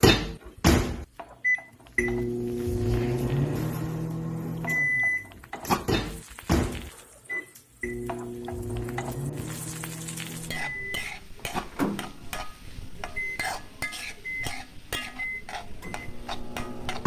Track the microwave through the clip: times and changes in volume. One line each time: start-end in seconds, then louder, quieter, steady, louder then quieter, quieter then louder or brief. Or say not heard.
0.0-17.0 quieter.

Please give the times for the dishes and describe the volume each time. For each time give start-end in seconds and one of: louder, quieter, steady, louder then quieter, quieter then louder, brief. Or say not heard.
not heard.